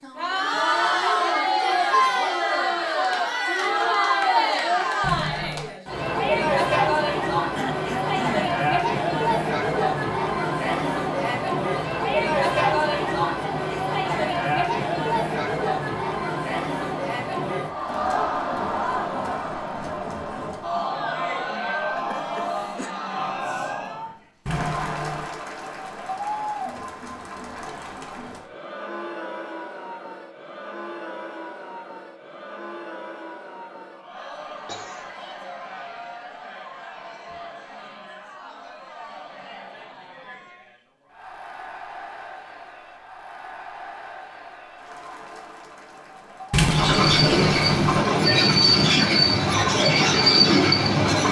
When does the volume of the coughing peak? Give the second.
8 s.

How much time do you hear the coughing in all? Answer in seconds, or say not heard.
2 s.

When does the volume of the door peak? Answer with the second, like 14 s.
47 s.